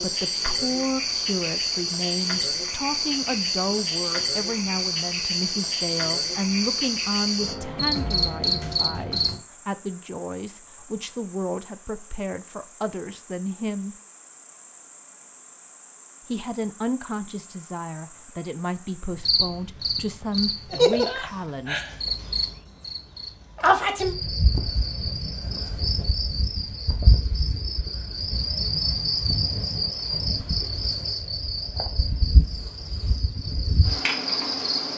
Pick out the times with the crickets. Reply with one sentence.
The crickets can be heard from 0.0 to 34.9 s.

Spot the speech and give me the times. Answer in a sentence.
The speech can be heard from 0.0 to 13.9 s and from 16.2 to 21.9 s.